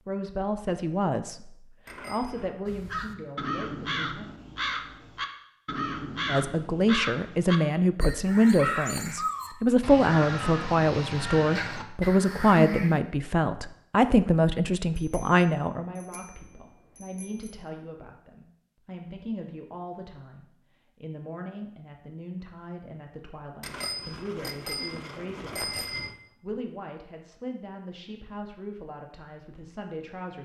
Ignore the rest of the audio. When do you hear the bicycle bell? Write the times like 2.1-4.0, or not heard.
1.9-2.5, 14.9-17.6, 23.6-26.1.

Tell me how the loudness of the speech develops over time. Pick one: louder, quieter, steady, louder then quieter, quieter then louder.
louder then quieter.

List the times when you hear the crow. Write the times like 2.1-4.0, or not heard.
2.6-13.0.